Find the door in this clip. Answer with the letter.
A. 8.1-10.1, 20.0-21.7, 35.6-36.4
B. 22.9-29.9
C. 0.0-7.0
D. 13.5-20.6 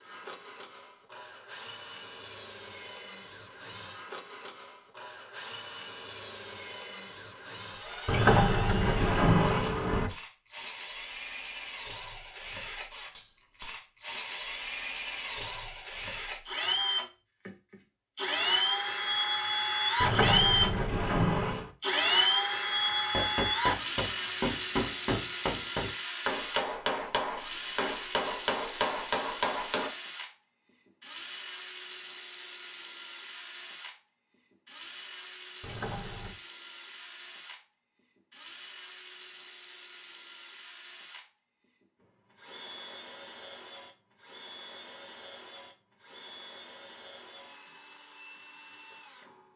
A.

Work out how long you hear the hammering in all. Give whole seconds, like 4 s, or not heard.
7 s.